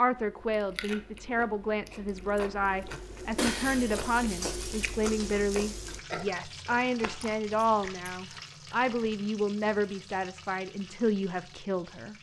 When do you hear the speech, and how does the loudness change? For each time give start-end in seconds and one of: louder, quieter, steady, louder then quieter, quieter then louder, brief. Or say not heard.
0.0-12.1 steady.